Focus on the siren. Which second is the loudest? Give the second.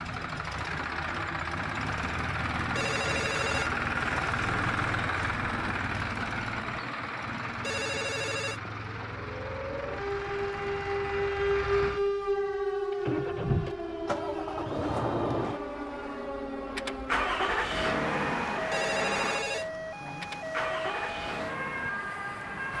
12 s.